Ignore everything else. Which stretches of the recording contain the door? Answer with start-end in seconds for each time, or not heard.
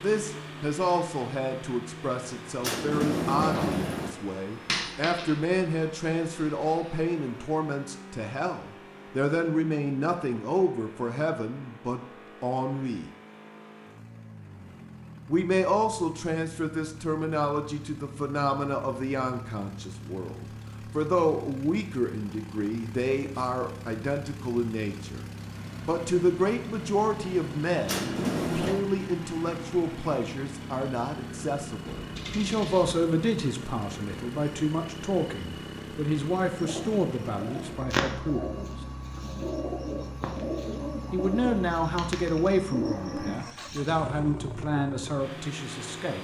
2.6-4.2, 27.9-28.9.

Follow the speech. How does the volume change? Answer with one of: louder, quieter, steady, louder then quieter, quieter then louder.
steady.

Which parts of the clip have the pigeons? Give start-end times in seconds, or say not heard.
36.5-44.0.